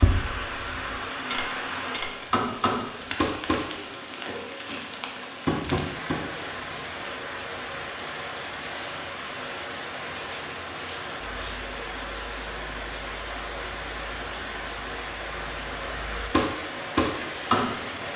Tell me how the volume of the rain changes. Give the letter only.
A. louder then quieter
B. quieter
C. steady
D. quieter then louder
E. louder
C.